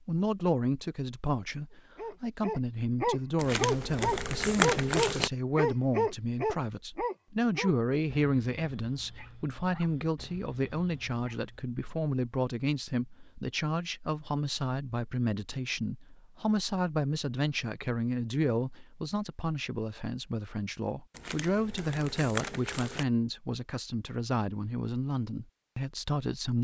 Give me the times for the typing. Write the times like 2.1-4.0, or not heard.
not heard.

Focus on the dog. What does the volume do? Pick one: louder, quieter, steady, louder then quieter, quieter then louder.
quieter.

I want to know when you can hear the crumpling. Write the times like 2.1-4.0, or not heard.
3.4-5.3, 21.1-23.1.